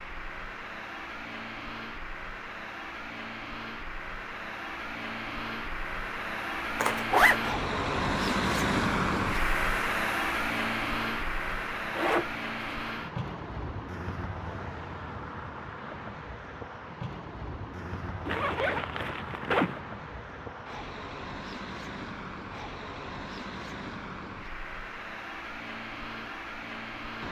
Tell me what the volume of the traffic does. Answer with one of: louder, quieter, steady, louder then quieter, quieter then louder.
louder then quieter.